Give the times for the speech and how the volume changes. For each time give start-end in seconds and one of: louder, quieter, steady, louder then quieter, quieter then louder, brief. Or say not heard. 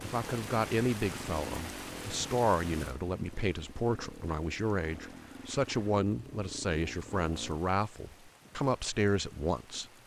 0.0-9.8 steady.